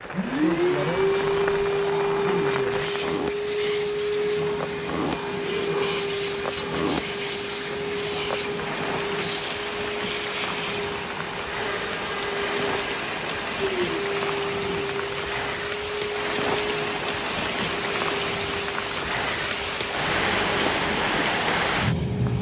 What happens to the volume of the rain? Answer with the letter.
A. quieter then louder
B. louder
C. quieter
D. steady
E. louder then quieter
B.